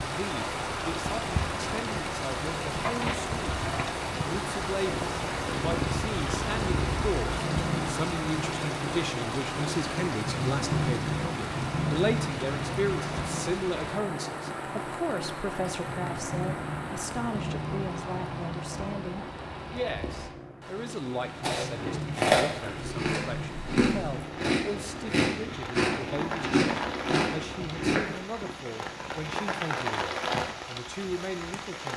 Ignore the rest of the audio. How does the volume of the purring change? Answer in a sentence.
The volume of the purring goes down.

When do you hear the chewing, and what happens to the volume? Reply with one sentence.
You can hear the chewing from 21.4 to 28.2 s, at a steady volume.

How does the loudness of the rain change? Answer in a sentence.
The loudness of the rain goes down, then up.